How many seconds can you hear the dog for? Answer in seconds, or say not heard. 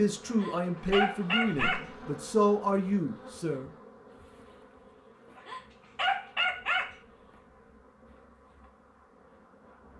3 s.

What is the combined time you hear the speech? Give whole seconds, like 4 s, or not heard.
4 s.